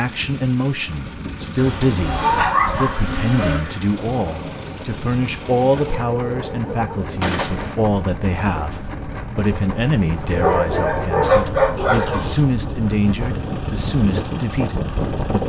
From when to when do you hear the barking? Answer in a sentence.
You can hear the barking from 1.6 to 3.6 s, from 5.7 to 7.0 s and from 10.3 to 12.2 s.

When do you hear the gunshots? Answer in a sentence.
The gunshots can be heard from 7.2 to 7.8 s.